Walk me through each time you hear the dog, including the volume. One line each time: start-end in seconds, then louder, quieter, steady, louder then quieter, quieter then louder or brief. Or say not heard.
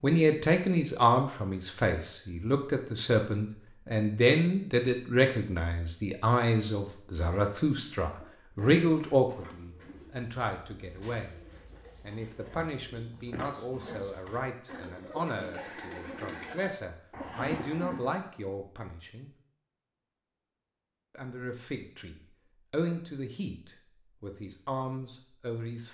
not heard.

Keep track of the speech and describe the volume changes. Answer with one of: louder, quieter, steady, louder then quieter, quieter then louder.
quieter.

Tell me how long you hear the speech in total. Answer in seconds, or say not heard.
23 s.